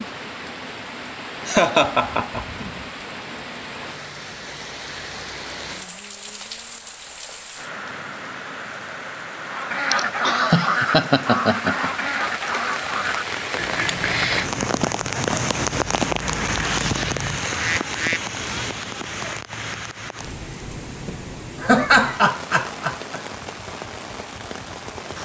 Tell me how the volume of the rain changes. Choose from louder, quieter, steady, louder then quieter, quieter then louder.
louder then quieter.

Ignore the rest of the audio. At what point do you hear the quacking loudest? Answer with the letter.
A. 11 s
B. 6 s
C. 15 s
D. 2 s
A.